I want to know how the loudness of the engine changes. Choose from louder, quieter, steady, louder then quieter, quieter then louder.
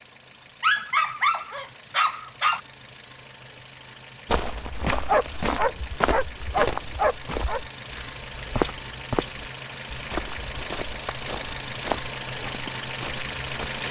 louder.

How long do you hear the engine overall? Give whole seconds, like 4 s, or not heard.
14 s.